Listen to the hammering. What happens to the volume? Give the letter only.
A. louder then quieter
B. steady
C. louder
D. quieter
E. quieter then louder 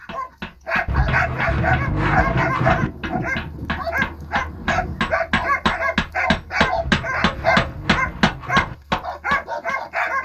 C.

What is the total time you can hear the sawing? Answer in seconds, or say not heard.
4 s.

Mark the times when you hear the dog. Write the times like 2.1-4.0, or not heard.
0.0-10.2.